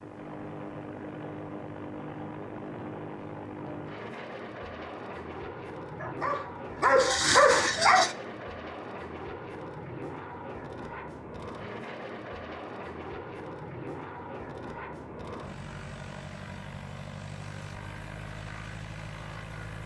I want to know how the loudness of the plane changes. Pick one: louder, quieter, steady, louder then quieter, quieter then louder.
steady.